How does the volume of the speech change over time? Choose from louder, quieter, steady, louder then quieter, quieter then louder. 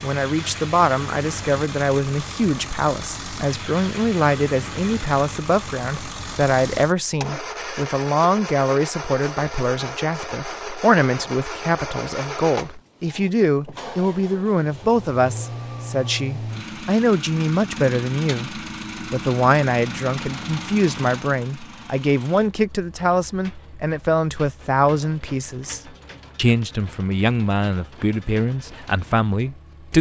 steady.